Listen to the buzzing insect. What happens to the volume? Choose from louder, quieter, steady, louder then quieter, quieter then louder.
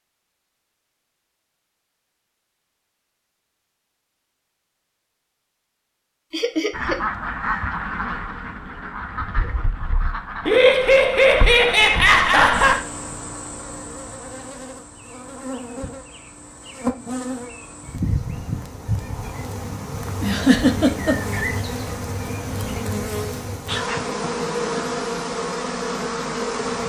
louder.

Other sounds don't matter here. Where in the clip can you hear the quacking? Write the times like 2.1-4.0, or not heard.
6.7-12.8.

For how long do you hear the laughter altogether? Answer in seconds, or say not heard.
4 s.